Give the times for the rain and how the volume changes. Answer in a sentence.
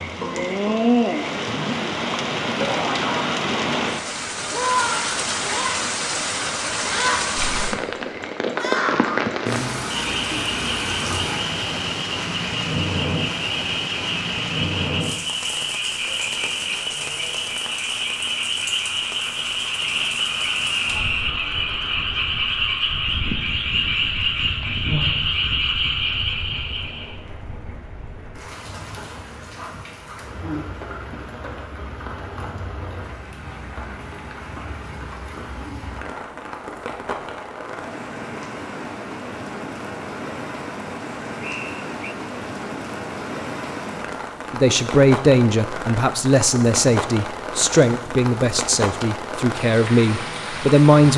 You can hear the rain from 0.0 to 51.1 s, getting quieter then louder.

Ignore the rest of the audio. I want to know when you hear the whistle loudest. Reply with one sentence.
The volume of the whistle peaks at 21 seconds.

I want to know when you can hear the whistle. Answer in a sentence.
You can hear the whistle from 19.8 to 21.4 s and from 41.4 to 42.1 s.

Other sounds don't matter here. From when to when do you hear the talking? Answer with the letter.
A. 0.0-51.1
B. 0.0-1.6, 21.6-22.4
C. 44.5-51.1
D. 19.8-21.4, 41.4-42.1
C.